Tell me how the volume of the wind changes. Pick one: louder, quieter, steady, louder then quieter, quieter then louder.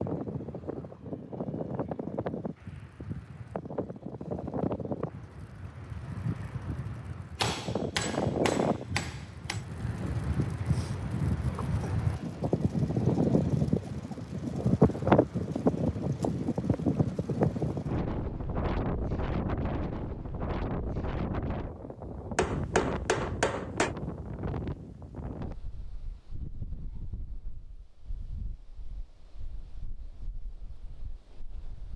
louder then quieter.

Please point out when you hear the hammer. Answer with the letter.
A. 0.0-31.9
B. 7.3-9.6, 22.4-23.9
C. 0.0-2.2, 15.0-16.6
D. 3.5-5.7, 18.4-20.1
B.